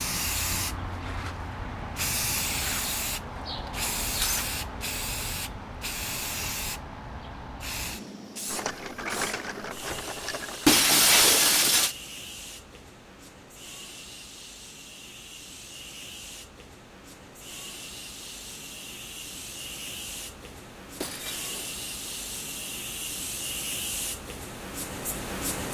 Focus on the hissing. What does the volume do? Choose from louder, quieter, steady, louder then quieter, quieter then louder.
quieter then louder.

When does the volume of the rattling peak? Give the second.
9 s.